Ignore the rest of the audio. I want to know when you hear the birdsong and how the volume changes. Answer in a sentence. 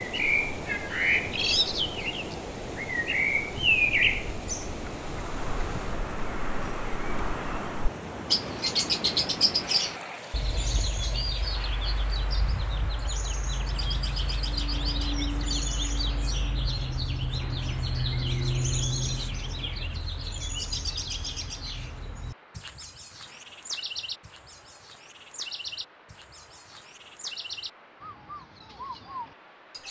You can hear the birdsong from 0.0 to 29.8 s, getting quieter.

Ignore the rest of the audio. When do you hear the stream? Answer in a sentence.
The stream can be heard from 0.0 to 29.8 s.